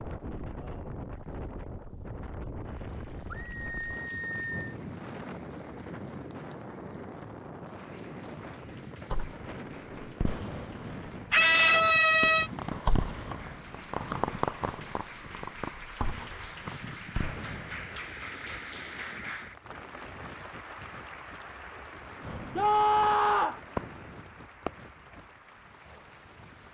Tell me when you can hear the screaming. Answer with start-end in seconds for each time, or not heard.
3.3-4.5, 11.3-12.5, 22.6-23.6.